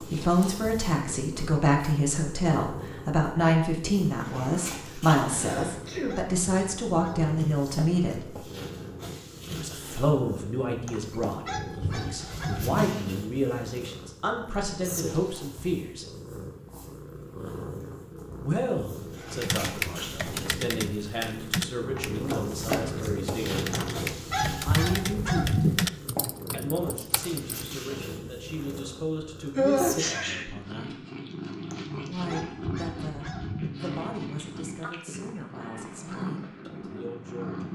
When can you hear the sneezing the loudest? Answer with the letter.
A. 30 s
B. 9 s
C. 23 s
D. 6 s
A.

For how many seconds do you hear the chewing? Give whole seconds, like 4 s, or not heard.
not heard.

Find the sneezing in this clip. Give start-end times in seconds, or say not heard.
5.2-6.2, 21.9-23.0, 29.6-30.4.